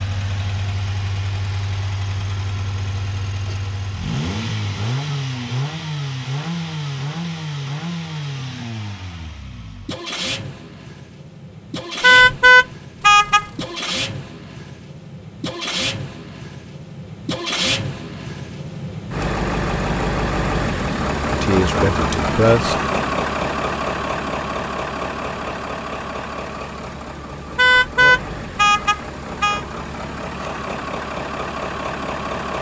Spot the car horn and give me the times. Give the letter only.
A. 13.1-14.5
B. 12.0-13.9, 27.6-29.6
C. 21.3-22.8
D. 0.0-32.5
B.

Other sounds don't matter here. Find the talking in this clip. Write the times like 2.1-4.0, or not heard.
21.3-22.8.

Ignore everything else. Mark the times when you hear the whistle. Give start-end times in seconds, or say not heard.
not heard.